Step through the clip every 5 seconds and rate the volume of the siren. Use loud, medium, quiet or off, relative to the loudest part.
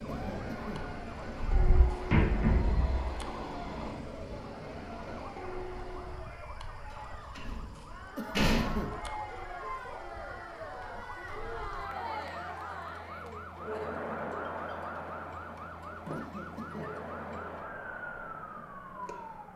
medium, medium, loud, loud.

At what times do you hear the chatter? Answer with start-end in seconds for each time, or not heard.
0.0-19.5.